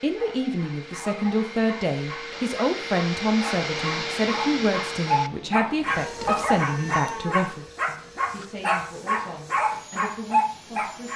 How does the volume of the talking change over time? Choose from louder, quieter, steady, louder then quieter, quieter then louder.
quieter.